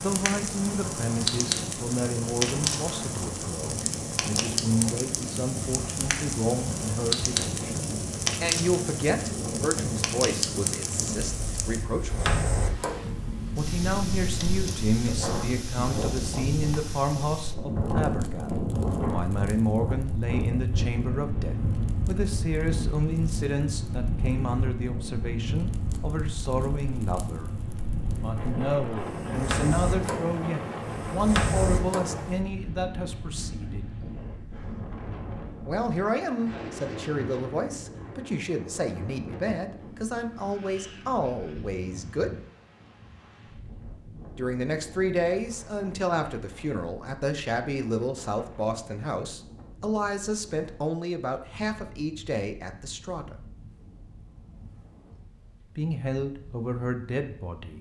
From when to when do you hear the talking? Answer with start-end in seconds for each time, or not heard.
0.0-12.3, 13.6-27.6, 28.2-33.9, 35.6-42.3, 44.4-53.4, 55.8-57.7.